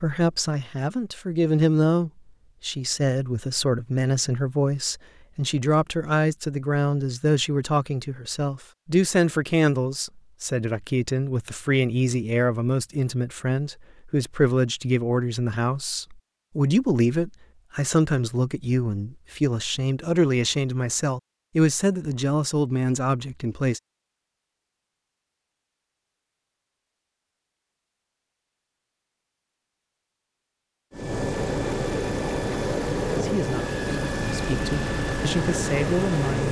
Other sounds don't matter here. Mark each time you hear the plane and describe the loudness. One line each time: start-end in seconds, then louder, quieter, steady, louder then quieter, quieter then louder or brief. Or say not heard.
30.9-36.4 steady.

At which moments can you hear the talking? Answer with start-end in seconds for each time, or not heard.
0.0-23.8, 33.2-36.4.